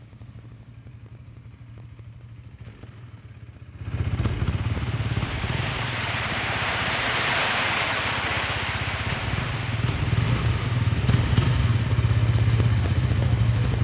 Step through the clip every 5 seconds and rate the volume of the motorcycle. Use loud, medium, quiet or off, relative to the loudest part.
quiet, medium, loud.